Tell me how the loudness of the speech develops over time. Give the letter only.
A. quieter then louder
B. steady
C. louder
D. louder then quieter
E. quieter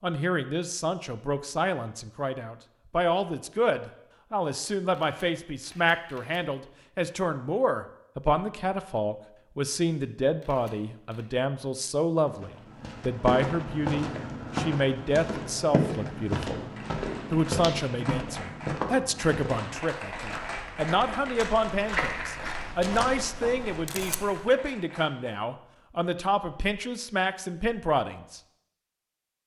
B.